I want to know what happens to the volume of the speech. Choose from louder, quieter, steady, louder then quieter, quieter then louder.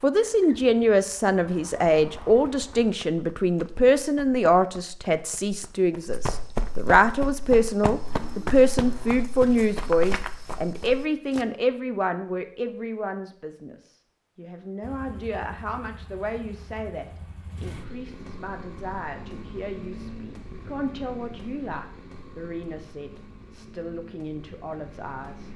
quieter.